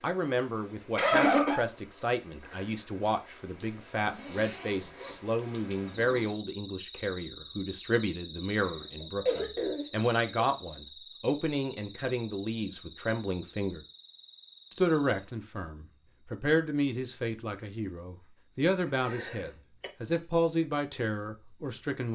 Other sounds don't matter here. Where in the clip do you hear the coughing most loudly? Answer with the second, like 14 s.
1 s.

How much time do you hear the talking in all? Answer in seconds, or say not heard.
21 s.